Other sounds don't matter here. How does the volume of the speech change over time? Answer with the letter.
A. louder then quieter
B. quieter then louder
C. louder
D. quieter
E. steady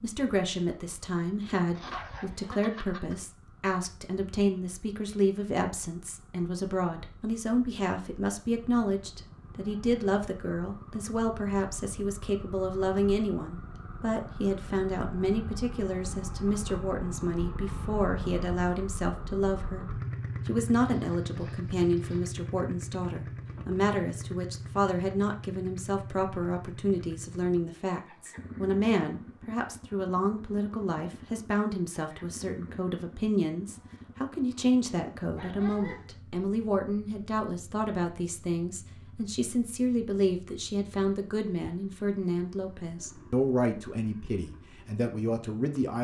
E.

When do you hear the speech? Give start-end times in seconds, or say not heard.
0.0-19.9, 20.4-45.9.